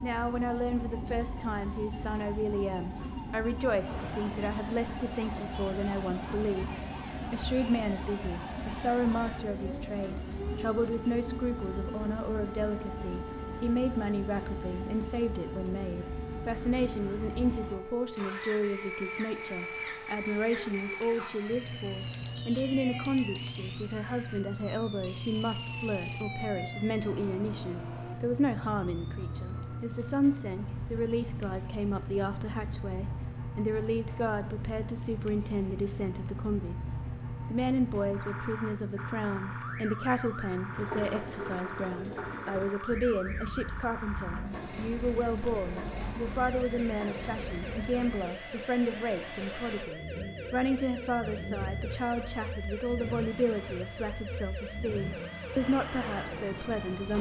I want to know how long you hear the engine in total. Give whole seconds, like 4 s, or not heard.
57 s.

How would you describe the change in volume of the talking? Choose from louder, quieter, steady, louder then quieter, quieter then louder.
steady.